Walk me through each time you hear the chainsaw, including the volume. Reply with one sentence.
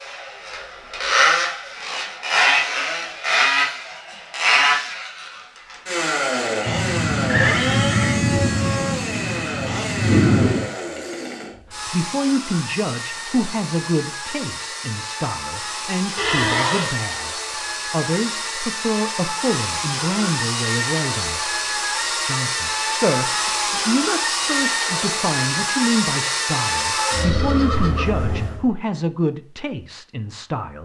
You can hear the chainsaw from 0.0 to 28.6 s, getting quieter then louder.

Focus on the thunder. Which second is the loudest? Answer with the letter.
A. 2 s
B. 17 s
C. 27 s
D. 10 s
D.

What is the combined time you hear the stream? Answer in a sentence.
You can't hear the stream here.